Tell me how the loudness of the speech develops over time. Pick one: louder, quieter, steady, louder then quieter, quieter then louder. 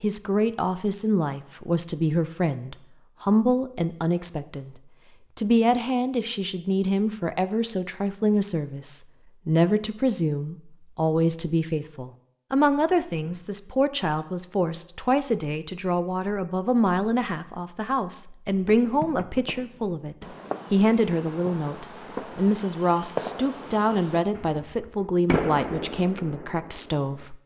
steady.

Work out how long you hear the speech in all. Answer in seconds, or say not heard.
27 s.